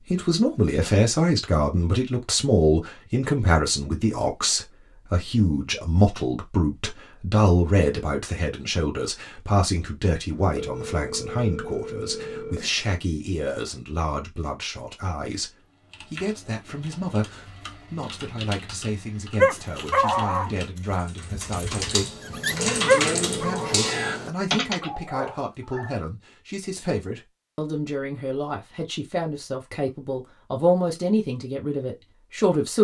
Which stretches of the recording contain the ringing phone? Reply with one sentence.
You can hear the ringing phone from 10.3 to 12.7 s and from 22.3 to 24.2 s.